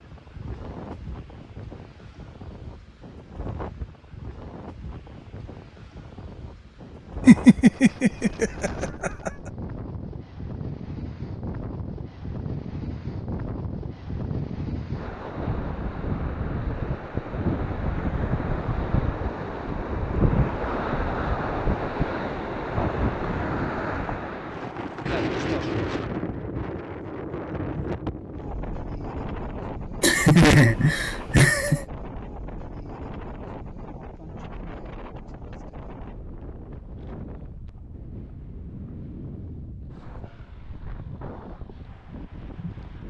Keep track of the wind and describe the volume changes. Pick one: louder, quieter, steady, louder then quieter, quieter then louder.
louder then quieter.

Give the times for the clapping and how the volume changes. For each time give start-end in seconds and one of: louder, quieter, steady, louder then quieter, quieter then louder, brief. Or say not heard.
not heard.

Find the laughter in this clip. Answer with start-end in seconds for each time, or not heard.
7.2-9.3, 30.0-31.9.